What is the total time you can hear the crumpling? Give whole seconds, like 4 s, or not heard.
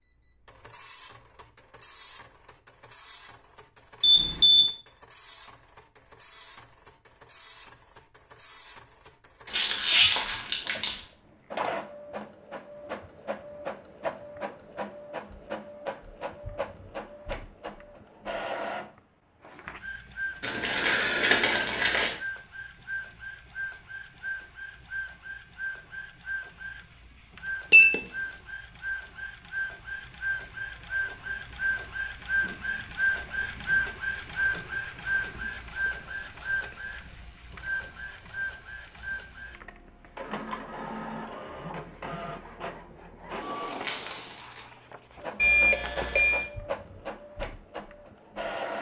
4 s.